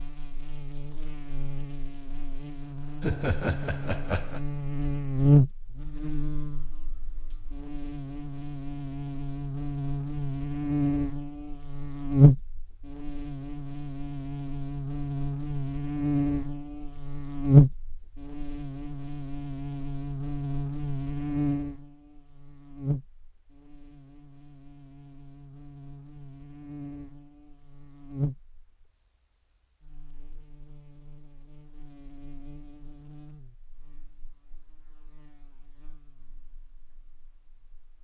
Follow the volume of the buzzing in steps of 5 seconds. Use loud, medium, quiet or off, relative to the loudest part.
quiet, loud, loud, loud, medium, quiet, quiet, quiet.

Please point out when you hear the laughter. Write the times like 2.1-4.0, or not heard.
3.0-4.4.